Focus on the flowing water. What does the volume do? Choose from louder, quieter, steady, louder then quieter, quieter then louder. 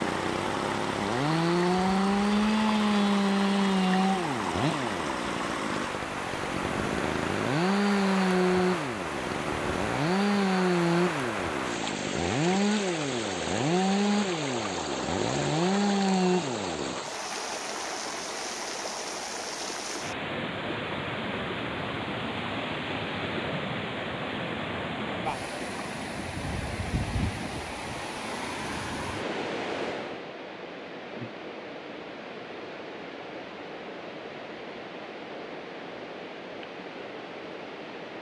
quieter.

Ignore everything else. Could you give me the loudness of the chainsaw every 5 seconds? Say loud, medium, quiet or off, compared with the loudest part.
loud, loud, loud, loud, off, off, off, off.